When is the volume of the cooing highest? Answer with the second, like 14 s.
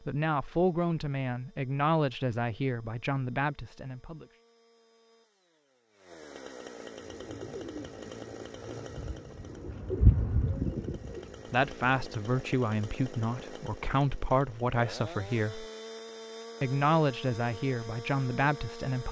10 s.